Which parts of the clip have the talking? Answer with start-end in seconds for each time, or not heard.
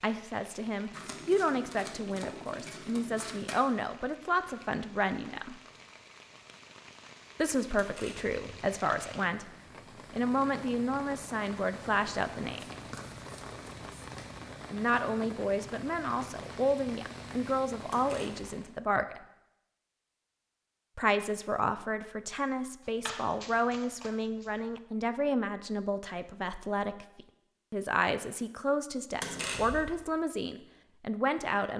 0.0-5.5, 7.3-9.5, 10.1-12.7, 14.7-19.2, 20.9-31.7.